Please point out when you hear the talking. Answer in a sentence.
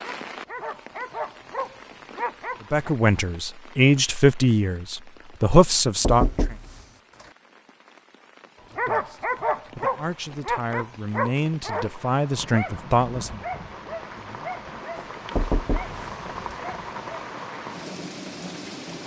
The talking can be heard from 2.7 to 6.5 s and from 8.7 to 13.4 s.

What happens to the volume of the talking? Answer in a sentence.
The loudness of the talking goes down, then up.